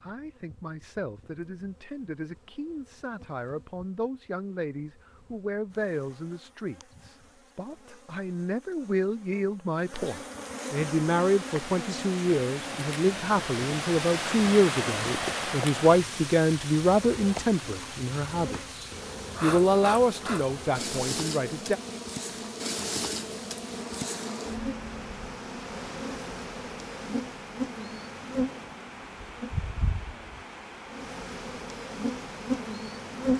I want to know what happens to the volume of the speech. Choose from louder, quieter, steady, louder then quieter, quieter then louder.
louder.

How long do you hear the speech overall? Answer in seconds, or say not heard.
22 s.